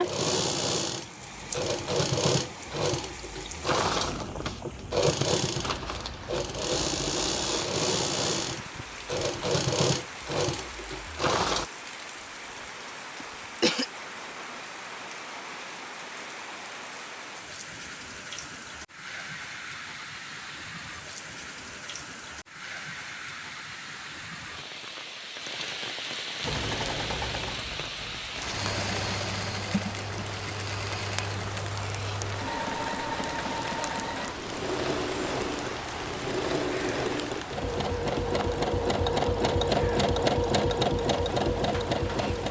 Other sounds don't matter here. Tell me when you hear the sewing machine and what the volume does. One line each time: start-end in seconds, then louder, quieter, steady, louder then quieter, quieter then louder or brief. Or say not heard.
0.0-11.7 steady
26.4-42.4 louder.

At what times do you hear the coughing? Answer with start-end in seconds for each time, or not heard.
13.2-13.8.